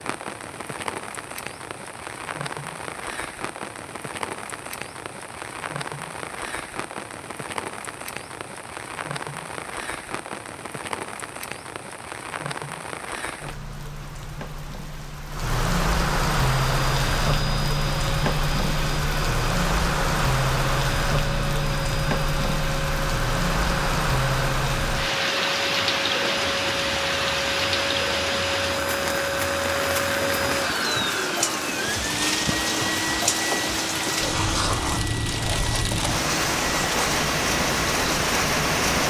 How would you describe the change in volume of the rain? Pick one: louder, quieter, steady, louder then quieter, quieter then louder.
louder.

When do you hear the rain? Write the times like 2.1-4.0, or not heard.
0.0-39.0.